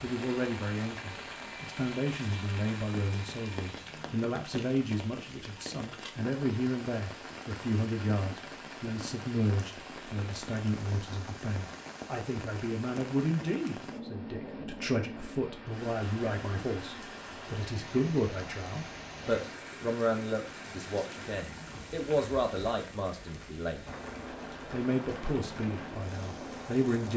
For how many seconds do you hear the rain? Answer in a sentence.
The rain can be heard for 27 seconds in total.